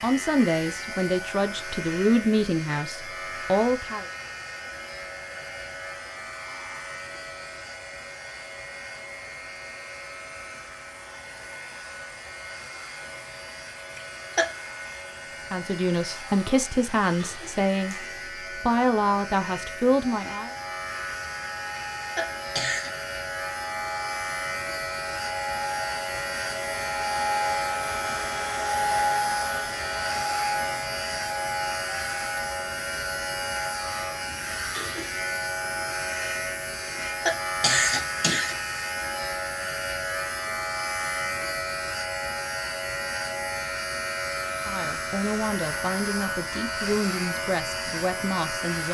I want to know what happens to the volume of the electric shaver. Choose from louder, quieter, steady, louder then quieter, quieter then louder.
louder.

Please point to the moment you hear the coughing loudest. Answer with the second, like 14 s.
38 s.